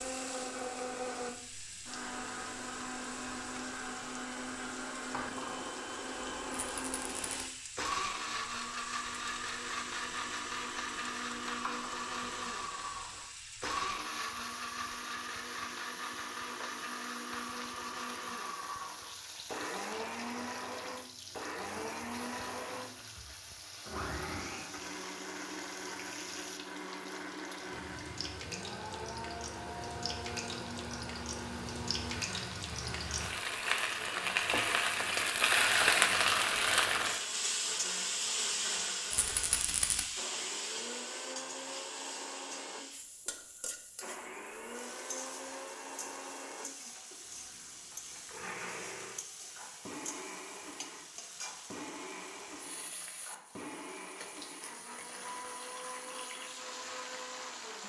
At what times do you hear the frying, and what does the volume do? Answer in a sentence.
The frying can be heard from 0.0 to 57.8 s, getting louder then quieter.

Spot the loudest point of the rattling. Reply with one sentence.
The volume of the rattling peaks at 40 seconds.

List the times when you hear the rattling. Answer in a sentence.
The rattling can be heard from 6.5 to 7.4 s and from 39.1 to 40.0 s.